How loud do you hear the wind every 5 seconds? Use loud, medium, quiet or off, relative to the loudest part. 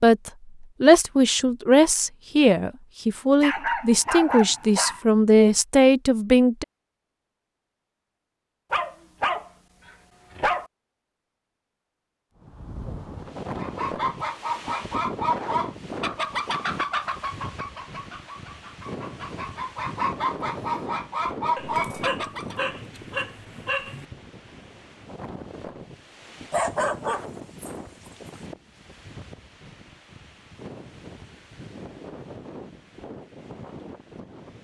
off, off, loud, loud, loud, medium, medium.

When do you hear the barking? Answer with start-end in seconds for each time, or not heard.
3.4-5.0, 8.7-10.7, 21.6-24.1, 26.5-28.4.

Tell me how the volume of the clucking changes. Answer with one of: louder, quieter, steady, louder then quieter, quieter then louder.
quieter then louder.